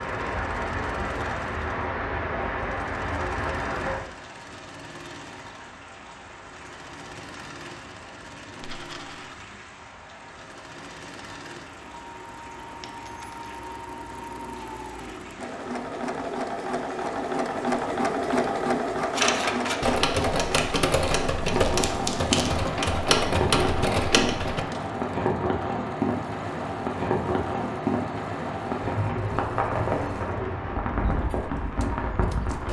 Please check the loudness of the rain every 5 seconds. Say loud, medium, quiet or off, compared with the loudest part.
loud, quiet, quiet, quiet, loud, loud, loud.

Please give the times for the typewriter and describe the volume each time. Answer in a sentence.
You can hear the typewriter from 19.1 to 24.6 s, at a steady volume.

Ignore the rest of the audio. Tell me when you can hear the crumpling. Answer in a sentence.
The crumpling can be heard from 20.5 to 22.6 s.